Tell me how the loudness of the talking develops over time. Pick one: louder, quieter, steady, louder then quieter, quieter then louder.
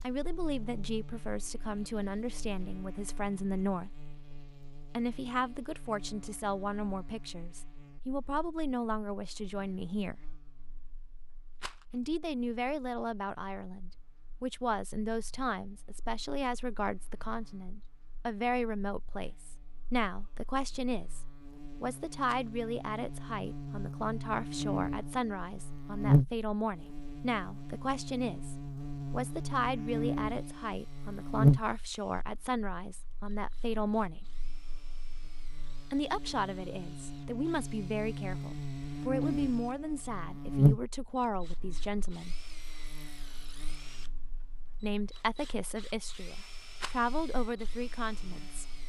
steady.